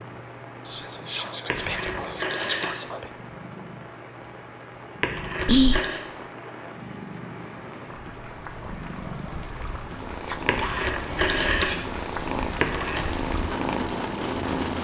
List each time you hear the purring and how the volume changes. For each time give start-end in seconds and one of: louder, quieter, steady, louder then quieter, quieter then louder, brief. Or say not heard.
0.0-14.7 louder.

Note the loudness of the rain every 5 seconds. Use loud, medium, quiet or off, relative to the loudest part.
medium, medium, loud.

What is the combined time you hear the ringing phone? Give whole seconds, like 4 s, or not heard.
5 s.